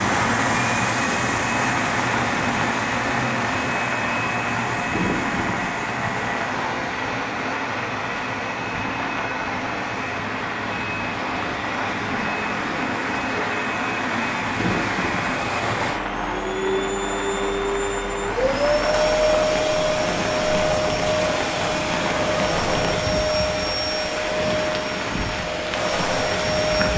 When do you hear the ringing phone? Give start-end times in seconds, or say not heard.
not heard.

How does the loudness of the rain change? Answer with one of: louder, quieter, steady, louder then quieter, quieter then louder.
steady.